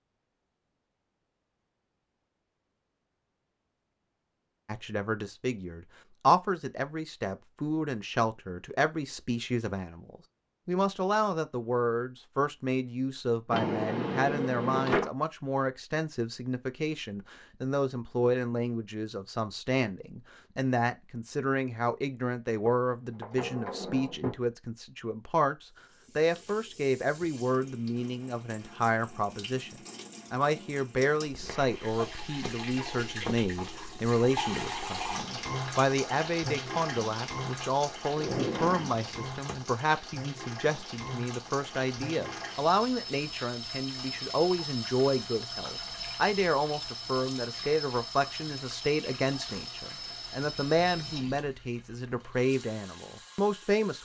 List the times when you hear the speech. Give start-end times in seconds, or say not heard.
4.7-53.9.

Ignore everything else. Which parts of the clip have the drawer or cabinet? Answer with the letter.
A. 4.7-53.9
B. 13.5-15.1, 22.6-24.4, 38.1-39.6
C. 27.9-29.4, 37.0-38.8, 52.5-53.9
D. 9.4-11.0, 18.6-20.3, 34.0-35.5
B.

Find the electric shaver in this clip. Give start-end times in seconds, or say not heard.
not heard.